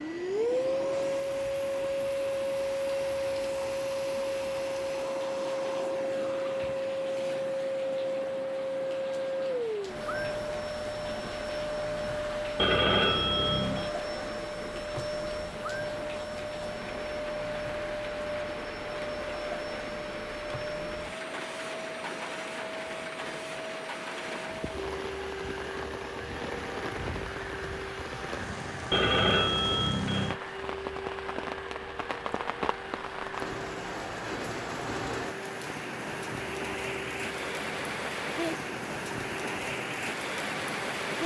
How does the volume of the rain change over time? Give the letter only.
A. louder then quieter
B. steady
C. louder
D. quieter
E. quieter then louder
C.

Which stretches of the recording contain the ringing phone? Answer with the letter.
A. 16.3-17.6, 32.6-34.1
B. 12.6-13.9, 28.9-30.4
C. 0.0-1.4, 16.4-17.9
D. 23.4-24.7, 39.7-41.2
B.